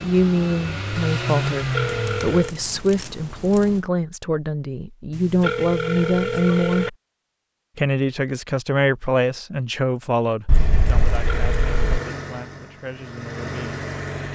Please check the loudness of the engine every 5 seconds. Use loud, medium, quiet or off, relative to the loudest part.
loud, off, medium.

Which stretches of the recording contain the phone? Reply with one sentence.
You can hear the phone from 1.6 to 2.5 s, from 5.1 to 6.9 s and from 11.2 to 12.1 s.